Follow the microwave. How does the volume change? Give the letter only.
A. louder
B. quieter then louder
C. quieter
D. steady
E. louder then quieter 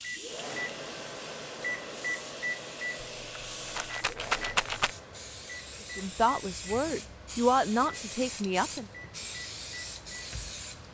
C.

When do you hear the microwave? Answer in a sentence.
You can hear the microwave from 0.0 to 10.8 s.